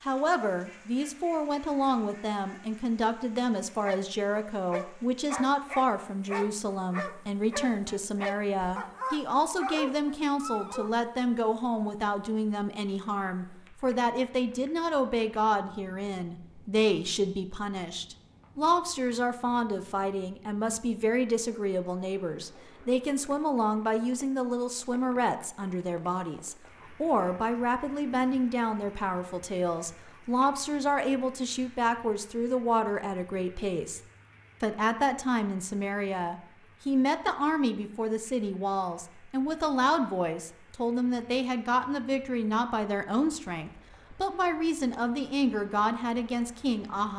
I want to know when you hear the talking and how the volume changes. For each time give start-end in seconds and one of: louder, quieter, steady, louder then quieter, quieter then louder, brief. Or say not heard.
0.0-34.0 steady
34.6-47.1 steady.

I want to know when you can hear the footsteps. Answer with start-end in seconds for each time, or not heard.
not heard.